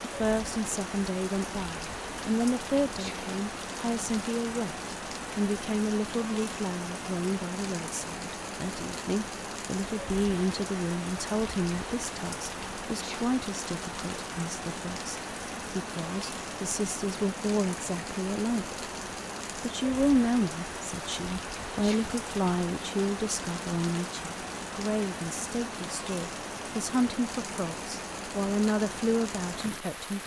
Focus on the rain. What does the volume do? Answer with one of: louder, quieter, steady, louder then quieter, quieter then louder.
steady.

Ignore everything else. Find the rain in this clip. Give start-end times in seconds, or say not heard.
0.0-30.2.